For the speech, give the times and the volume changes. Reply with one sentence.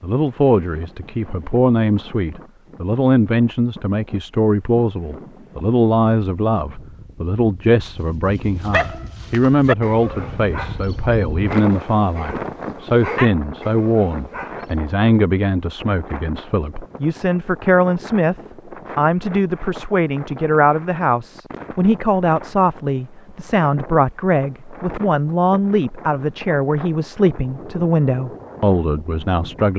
The speech can be heard from 0.0 to 29.7 s, at a steady volume.